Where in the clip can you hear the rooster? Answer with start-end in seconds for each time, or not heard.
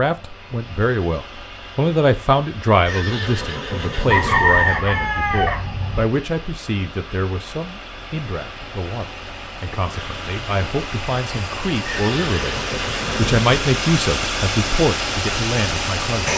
4.0-6.0.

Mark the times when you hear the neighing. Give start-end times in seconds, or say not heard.
2.9-4.8, 11.8-13.5.